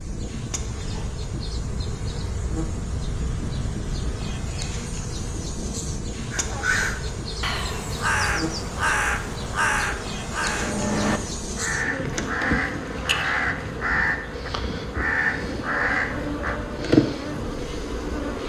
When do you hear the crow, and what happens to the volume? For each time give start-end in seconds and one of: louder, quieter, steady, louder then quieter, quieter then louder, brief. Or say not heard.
6.3-16.6 steady.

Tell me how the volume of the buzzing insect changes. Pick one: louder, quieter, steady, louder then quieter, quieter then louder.
louder.